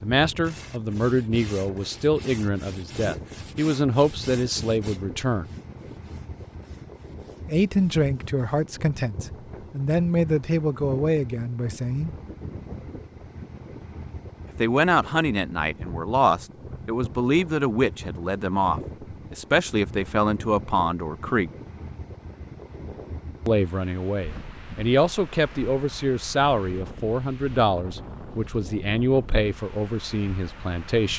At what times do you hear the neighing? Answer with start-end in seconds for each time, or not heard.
not heard.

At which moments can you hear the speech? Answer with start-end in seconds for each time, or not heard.
0.0-5.5, 7.5-12.1, 14.6-21.5, 23.4-31.1.